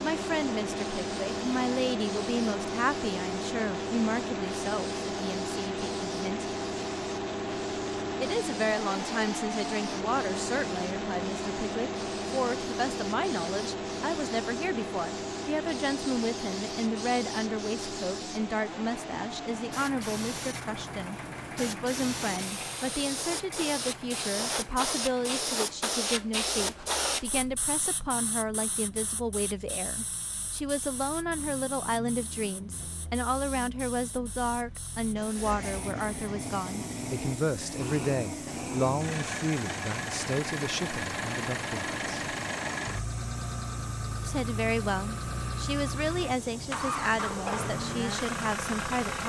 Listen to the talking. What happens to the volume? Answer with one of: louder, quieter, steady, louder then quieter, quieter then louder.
steady.